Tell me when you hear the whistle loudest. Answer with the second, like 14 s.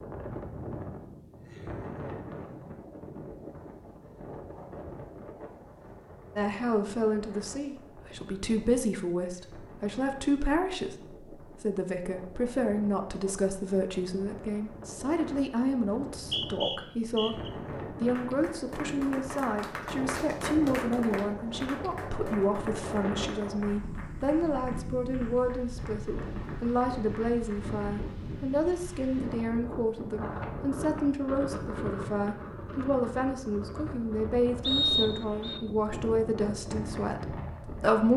35 s.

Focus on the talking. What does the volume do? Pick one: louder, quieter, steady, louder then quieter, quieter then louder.
steady.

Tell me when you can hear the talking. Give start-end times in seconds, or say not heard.
6.3-38.1.